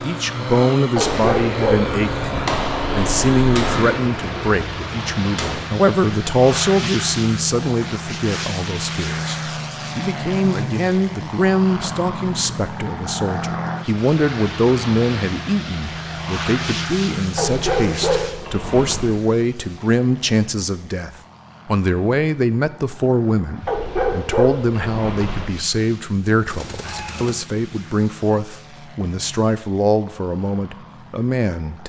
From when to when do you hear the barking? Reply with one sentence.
You can hear the barking from 0.9 to 3.5 s, from 17.4 to 19.1 s and from 23.6 to 25.5 s.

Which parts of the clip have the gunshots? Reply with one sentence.
You can hear the gunshots from 1.0 to 5.7 s and from 26.4 to 27.4 s.